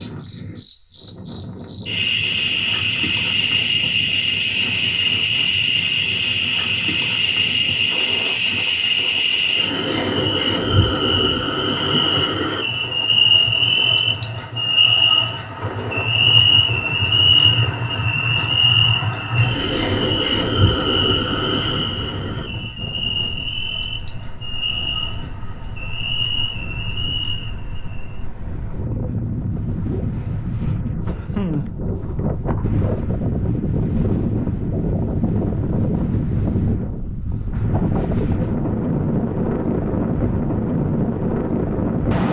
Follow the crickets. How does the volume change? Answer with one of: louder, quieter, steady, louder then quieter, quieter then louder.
quieter.